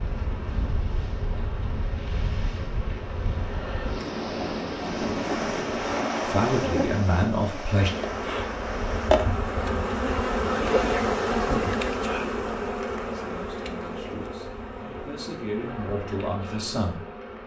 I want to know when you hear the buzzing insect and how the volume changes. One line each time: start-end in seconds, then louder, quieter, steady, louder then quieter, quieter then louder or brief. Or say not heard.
0.0-17.4 louder then quieter.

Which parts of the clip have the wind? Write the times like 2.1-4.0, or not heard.
0.0-9.2.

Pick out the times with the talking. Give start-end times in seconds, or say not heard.
6.2-7.9, 13.1-17.1.